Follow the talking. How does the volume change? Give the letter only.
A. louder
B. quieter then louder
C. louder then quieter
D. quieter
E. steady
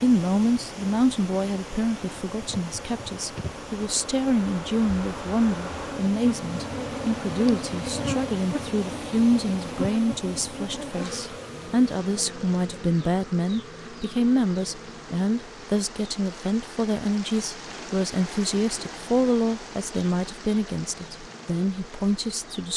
E.